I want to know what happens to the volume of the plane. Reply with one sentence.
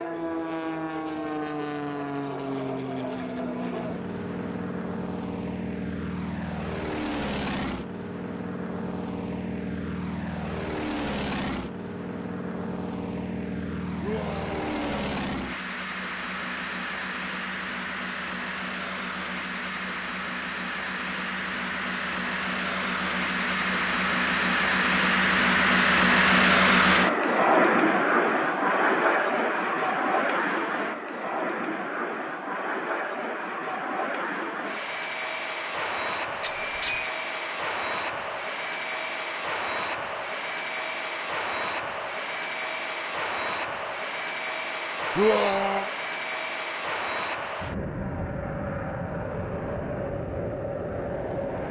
The loudness of the plane goes up, then down.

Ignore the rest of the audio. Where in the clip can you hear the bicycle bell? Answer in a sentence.
You can hear the bicycle bell from 36.4 to 37.1 s.